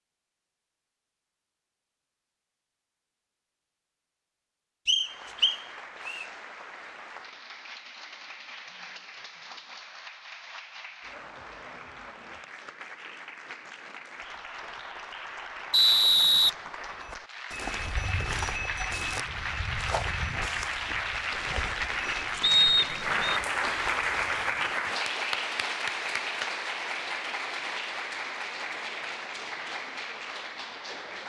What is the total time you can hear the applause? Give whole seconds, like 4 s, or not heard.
26 s.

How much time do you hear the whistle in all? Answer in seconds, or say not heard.
3 s.